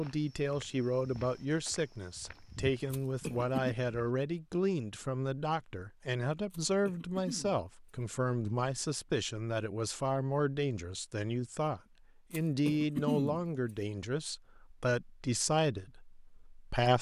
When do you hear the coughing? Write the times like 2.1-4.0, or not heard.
2.9-3.8, 6.5-7.7, 12.3-13.4.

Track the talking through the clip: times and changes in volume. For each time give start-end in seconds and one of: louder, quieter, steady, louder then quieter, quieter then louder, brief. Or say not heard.
0.0-16.9 steady.